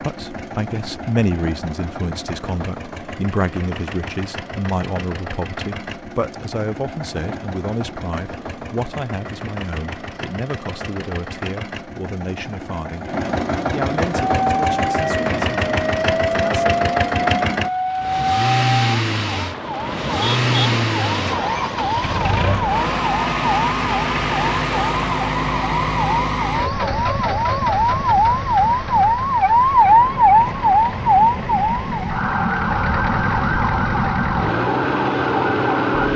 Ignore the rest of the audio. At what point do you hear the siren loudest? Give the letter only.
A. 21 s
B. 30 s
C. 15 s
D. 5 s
B.